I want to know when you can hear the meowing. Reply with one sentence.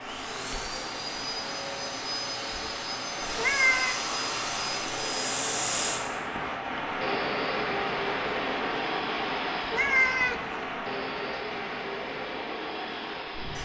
You can hear the meowing from 3.3 to 4.0 s and from 9.7 to 10.4 s.